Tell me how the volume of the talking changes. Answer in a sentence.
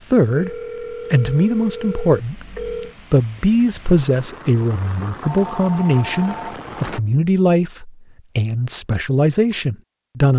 The volume of the talking stays about the same.